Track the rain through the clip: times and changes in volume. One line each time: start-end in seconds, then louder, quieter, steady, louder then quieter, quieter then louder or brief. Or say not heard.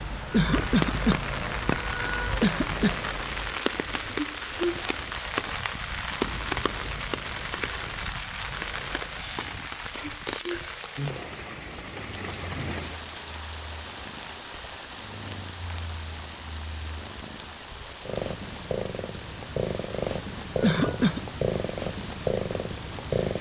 0.0-23.3 quieter.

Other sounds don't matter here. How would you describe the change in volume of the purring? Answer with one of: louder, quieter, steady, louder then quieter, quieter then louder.
quieter then louder.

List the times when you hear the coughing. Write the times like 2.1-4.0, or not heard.
0.3-3.0, 20.6-21.3.